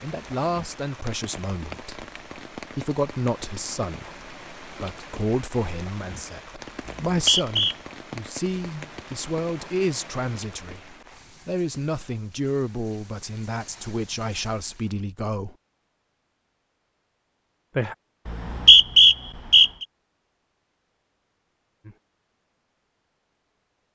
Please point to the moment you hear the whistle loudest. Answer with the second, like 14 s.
19 s.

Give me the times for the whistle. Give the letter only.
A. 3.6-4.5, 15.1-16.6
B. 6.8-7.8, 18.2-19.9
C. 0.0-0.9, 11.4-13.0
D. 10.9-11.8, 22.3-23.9
B.